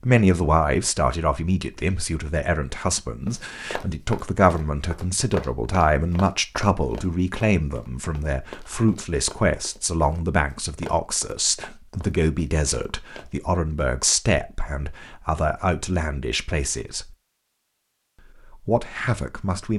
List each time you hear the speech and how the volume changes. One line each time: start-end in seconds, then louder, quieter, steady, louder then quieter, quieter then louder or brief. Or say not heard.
0.0-17.1 steady
18.5-19.7 brief.